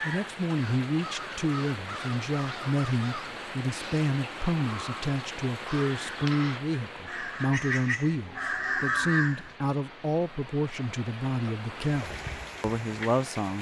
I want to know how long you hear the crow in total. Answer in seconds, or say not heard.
9 s.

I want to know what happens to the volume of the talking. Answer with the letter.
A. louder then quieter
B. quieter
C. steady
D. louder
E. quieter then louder
C.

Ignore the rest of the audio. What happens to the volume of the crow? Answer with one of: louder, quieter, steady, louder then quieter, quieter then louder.
louder.